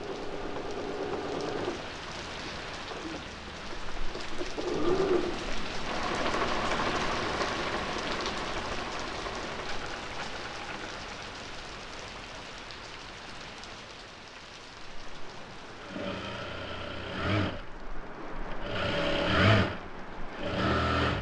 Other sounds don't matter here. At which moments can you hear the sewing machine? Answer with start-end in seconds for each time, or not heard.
0.0-11.2, 15.0-21.1.